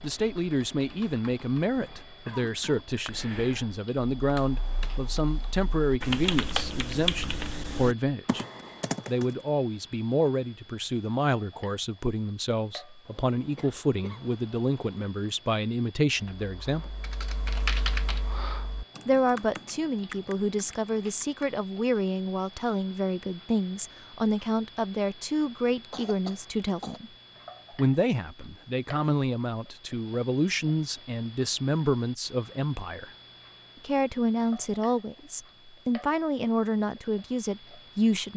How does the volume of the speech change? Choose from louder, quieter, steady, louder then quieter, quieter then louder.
steady.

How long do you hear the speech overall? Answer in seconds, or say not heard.
34 s.